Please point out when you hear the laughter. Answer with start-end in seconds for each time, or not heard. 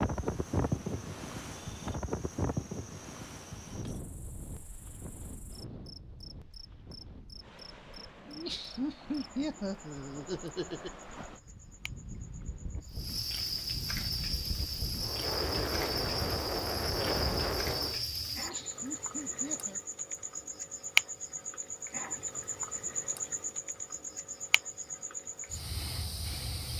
8.2-10.9, 18.3-19.8.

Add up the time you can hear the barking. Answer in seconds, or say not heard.
not heard.